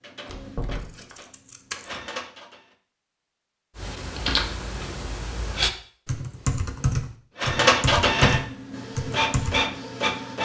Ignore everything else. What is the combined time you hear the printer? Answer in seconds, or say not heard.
6 s.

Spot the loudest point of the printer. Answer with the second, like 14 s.
8 s.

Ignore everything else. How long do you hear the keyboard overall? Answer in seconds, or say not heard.
6 s.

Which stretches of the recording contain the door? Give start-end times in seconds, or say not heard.
0.2-1.1.